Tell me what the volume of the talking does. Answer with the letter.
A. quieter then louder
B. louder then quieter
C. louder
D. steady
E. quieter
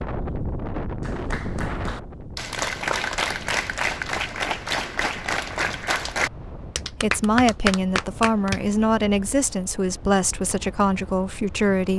D.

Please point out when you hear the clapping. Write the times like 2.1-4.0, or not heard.
1.0-8.6.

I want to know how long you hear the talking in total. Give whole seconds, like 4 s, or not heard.
5 s.